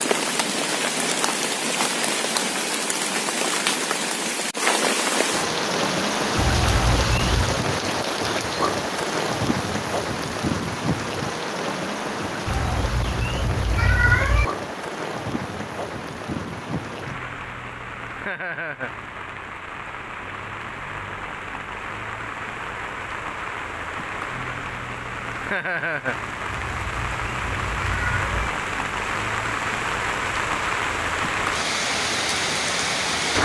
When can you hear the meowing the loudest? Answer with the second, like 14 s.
14 s.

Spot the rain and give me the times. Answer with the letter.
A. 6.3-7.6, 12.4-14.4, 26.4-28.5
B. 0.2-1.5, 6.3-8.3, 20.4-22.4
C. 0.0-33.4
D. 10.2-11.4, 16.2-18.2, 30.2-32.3
C.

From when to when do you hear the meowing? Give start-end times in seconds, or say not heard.
6.3-7.6, 12.4-14.4, 26.4-28.5.